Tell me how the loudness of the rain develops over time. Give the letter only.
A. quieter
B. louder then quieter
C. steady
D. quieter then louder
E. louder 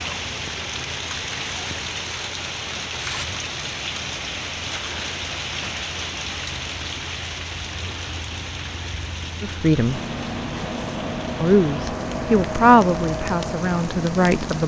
A.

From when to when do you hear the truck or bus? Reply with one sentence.
The truck or bus can be heard from 0.0 to 14.6 s.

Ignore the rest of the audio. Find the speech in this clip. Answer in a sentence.
You can hear the speech from 9.4 to 10.0 s and from 11.4 to 14.6 s.